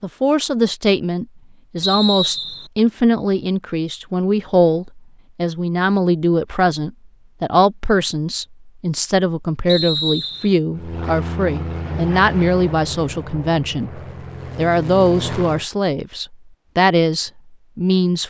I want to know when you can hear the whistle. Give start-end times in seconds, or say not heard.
1.8-2.7, 9.7-10.6.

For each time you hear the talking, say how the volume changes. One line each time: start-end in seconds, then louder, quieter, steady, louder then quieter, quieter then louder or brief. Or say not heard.
0.0-18.2 steady.